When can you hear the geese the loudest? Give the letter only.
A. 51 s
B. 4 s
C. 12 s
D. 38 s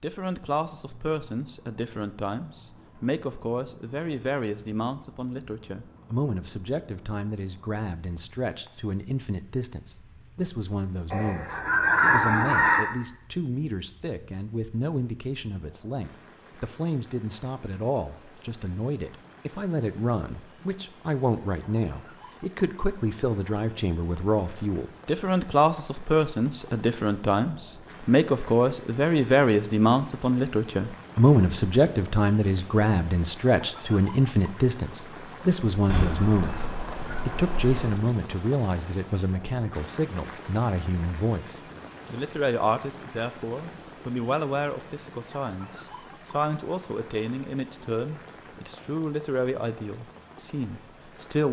C.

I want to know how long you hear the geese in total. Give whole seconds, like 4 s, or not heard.
4 s.